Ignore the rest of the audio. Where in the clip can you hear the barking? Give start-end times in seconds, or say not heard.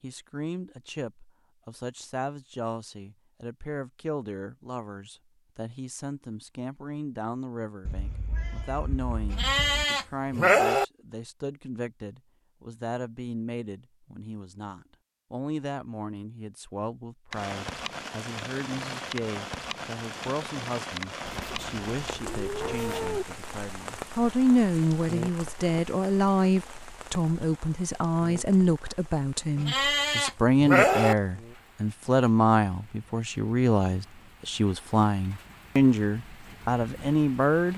not heard.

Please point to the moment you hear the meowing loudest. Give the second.
23 s.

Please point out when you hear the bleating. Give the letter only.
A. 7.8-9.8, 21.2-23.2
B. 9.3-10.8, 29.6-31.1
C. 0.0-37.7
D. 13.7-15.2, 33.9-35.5
B.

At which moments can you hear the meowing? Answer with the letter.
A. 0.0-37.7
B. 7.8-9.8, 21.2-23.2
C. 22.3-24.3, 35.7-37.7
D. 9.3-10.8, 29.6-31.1
B.